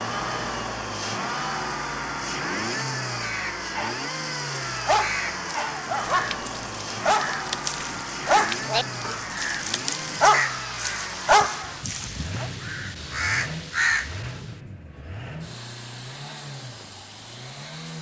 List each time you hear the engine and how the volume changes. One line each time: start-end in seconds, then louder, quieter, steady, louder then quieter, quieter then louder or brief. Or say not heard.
0.0-17.9 quieter.